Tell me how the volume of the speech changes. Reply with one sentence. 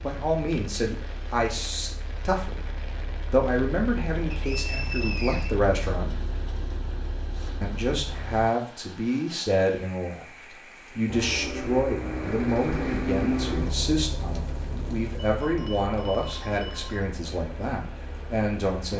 The loudness of the speech stays about the same.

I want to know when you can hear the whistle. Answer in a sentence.
You can hear the whistle from 4.3 to 5.6 s.